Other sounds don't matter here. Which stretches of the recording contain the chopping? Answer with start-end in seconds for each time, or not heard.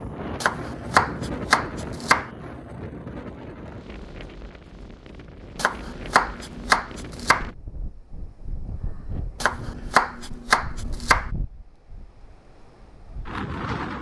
0.4-2.3, 5.5-7.5, 9.4-11.3.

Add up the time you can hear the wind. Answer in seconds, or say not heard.
14 s.